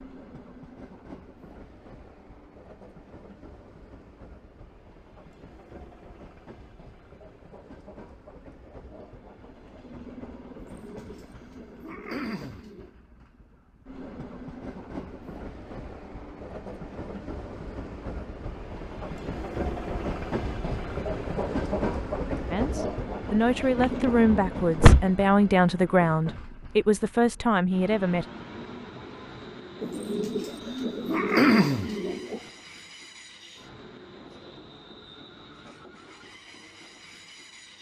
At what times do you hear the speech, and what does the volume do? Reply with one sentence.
You can hear the speech from 22.5 to 28.2 s, at a steady volume.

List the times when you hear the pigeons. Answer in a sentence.
The pigeons can be heard from 10.6 to 12.9 s and from 29.8 to 32.4 s.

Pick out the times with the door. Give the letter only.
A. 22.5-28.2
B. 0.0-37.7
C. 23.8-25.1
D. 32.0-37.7
C.